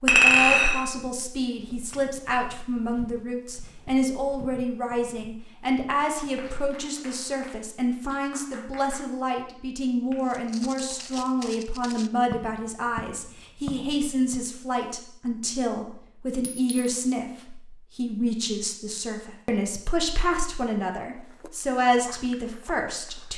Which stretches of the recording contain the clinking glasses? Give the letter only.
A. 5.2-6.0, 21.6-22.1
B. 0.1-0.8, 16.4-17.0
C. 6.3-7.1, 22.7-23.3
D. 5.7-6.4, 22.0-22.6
B.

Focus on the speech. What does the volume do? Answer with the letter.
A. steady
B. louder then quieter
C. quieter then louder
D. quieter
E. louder
A.